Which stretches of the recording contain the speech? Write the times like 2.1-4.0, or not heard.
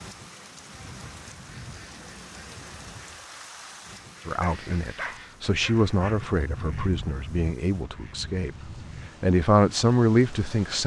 4.2-8.5, 9.2-10.8.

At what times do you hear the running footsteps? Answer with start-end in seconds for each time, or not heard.
not heard.